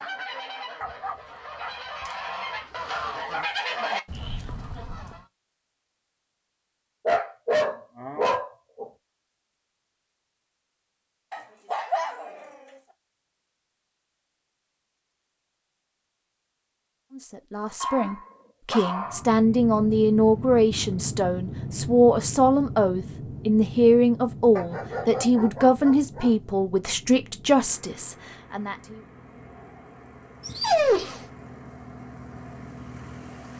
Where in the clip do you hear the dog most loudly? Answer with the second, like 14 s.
31 s.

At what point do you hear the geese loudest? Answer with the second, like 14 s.
4 s.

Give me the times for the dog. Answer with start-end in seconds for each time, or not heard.
0.8-3.5, 7.0-8.9, 11.3-12.6, 17.8-19.2, 24.6-26.3, 30.4-31.2.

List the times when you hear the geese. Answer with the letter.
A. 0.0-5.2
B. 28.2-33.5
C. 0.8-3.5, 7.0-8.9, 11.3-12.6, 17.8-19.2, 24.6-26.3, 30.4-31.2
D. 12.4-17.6
A.